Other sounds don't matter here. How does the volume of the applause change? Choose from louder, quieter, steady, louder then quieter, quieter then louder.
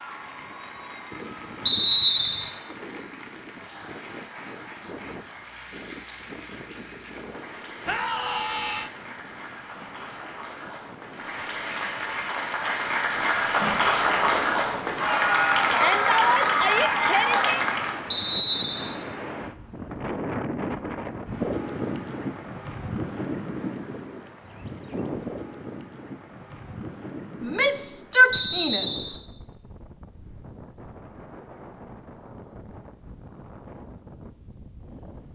louder.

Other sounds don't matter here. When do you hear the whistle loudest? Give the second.
2 s.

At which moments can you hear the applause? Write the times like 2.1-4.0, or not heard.
0.0-18.1.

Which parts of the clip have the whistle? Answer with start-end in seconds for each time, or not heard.
1.6-2.5, 18.1-18.9, 28.3-29.2.